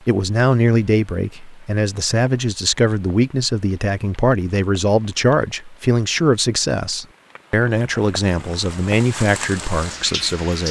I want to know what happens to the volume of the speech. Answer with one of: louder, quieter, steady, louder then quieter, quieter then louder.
steady.